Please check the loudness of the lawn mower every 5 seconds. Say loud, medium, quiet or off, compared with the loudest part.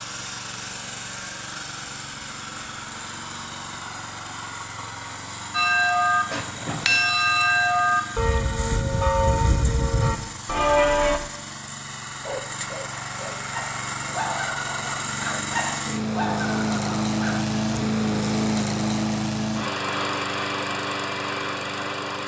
medium, medium, medium, loud, loud.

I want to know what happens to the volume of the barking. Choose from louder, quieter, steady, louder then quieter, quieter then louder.
louder.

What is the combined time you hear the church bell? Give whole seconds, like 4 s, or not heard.
6 s.